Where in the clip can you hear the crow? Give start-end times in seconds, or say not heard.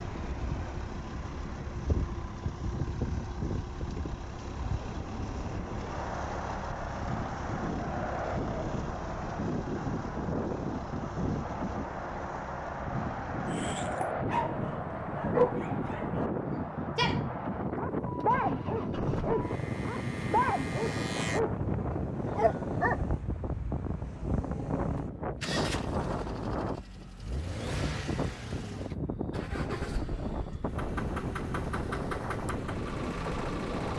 not heard.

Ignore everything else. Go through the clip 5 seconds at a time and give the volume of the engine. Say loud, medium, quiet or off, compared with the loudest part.
loud, loud, medium, loud, loud, loud, loud.